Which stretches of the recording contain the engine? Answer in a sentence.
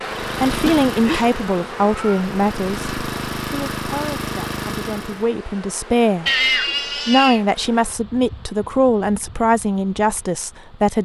The engine can be heard from 0.0 to 5.2 s.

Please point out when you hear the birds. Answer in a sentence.
The birds can't be heard in this clip.